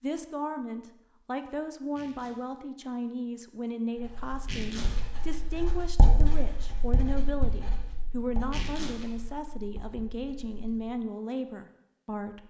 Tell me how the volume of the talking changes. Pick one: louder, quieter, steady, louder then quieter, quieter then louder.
steady.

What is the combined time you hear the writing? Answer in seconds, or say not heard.
7 s.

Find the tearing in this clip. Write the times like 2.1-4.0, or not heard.
1.8-2.4, 4.3-5.0, 8.4-9.1.